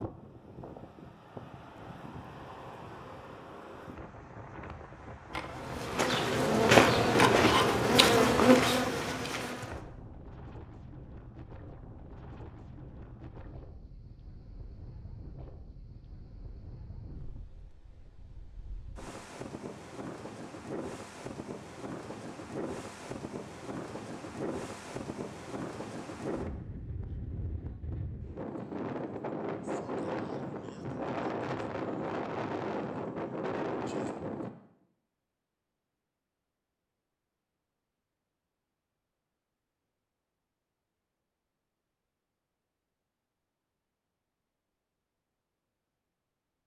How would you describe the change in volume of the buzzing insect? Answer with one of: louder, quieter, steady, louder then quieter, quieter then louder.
louder then quieter.